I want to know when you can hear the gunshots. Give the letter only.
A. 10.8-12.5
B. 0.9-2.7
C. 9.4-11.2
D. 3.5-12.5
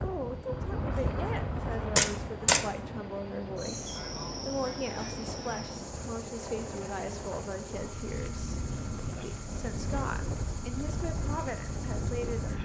B.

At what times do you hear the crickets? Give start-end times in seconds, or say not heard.
3.5-12.5.